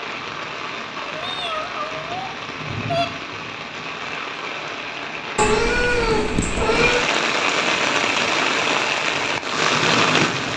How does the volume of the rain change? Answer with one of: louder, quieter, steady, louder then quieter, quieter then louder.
louder.